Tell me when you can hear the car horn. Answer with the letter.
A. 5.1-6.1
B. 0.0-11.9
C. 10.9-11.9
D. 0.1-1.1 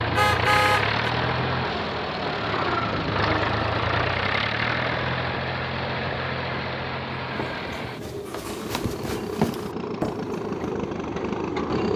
D.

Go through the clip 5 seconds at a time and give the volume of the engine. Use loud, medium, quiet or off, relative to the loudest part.
loud, medium, loud.